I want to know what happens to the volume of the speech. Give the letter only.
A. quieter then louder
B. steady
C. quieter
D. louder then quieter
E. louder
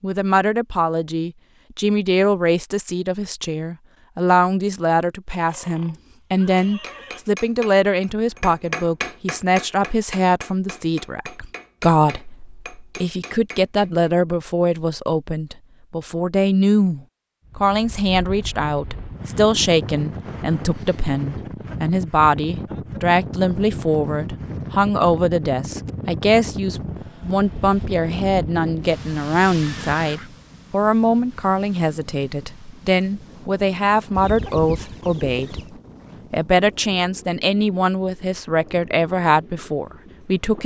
B.